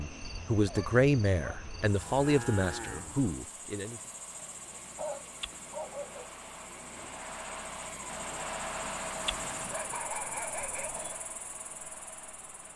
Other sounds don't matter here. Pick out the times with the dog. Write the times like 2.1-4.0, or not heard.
0.7-1.6, 4.3-6.3, 9.2-11.2.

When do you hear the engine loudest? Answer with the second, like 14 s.
9 s.